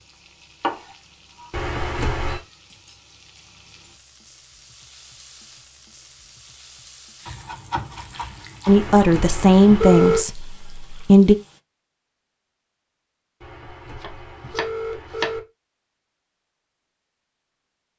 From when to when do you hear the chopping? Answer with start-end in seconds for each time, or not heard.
0.6-1.5, 7.2-8.8, 14.0-15.3.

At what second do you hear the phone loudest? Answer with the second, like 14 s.
10 s.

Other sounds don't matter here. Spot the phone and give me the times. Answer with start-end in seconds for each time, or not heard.
1.5-2.4, 8.7-10.2, 13.4-15.4.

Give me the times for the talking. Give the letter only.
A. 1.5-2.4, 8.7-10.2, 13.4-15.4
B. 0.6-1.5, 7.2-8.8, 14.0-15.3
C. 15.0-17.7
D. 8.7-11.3
D.